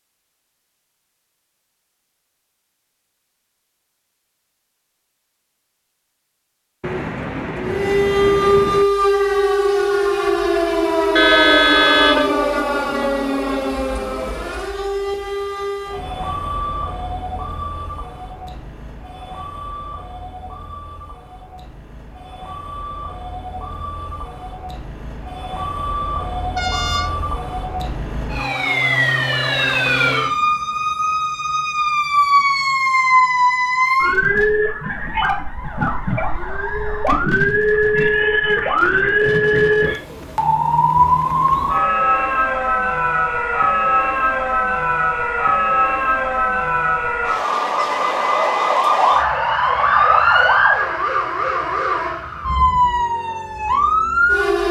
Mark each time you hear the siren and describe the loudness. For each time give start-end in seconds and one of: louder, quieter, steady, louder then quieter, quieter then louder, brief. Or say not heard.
7.6-54.6 quieter then louder.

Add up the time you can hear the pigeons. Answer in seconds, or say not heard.
4 s.